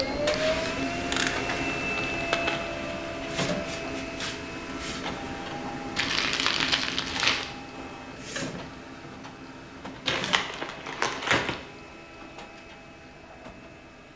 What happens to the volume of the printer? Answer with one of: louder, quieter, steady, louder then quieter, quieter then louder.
quieter.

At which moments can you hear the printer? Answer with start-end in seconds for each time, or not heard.
0.0-14.1.